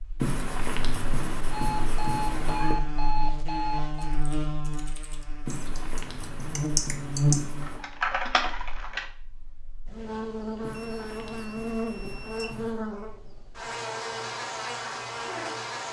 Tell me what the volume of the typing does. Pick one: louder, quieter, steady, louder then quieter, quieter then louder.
louder.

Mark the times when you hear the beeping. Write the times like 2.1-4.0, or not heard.
1.5-4.2, 10.7-12.7.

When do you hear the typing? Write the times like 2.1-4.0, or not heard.
4.0-9.1.